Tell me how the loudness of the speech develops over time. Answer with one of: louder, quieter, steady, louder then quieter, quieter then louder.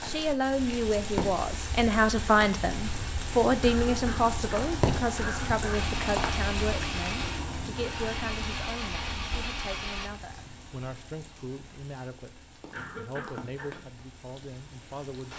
quieter.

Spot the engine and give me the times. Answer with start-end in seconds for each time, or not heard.
5.7-10.1.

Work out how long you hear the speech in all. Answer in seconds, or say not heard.
15 s.